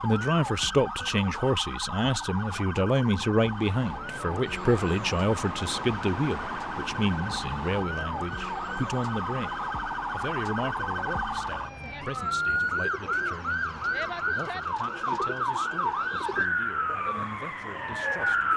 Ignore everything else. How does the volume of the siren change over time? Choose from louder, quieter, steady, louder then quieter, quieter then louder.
louder.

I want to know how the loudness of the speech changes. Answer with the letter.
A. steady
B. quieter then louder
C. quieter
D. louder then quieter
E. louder
C.